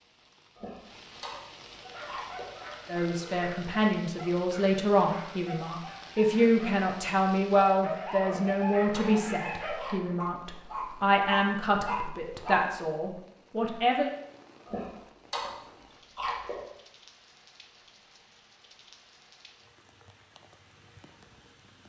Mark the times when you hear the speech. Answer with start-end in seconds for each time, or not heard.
2.9-14.1.